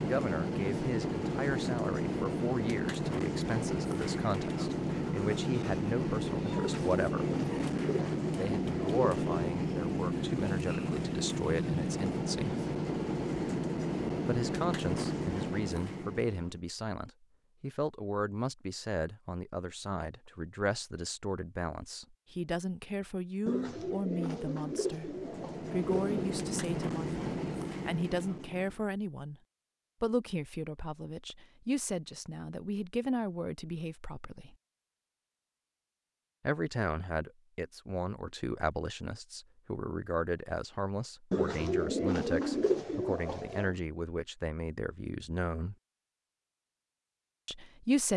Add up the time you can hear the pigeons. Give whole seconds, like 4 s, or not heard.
8 s.